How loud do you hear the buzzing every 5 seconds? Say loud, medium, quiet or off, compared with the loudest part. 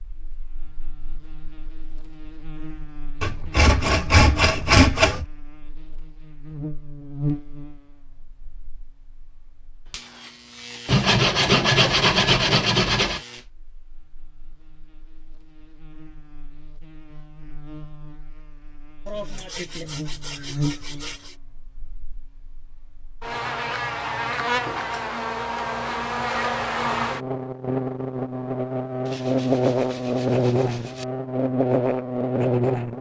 quiet, quiet, quiet, quiet, medium, loud, loud.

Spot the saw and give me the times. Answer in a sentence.
The saw can be heard from 3.2 to 5.2 s, from 10.8 to 13.2 s, from 19.1 to 21.4 s and from 29.1 to 31.1 s.